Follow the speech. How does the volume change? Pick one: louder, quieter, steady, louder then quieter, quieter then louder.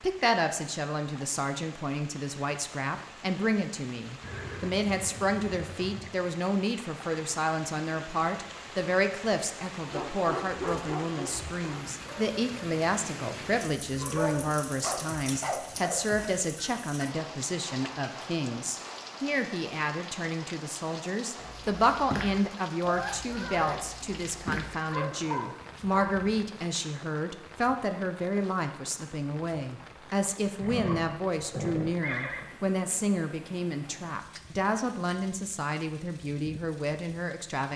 steady.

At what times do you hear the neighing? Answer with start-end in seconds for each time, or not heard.
4.2-6.2, 29.8-32.5.